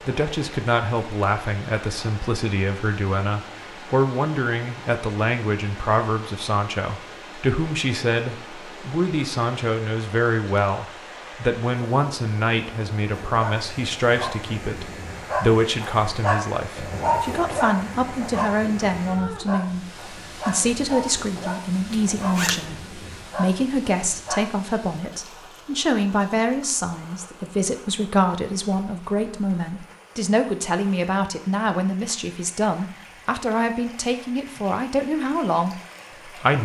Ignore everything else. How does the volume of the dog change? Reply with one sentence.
The loudness of the dog goes up, then down.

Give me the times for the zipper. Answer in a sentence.
You can hear the zipper from 21.9 to 22.6 s.